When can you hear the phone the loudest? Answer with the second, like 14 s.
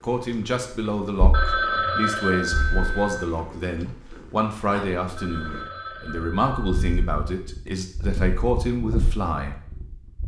2 s.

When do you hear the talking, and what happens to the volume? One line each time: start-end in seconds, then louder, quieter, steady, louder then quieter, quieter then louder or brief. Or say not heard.
0.0-9.6 steady.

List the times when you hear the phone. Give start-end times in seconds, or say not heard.
1.3-3.2, 5.2-7.1.